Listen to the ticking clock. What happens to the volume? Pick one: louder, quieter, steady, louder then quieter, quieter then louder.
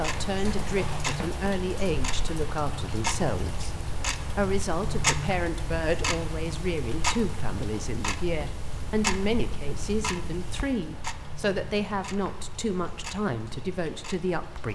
quieter.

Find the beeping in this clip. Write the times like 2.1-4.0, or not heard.
not heard.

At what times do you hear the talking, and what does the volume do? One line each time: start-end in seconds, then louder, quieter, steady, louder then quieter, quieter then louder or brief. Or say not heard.
0.0-14.7 steady.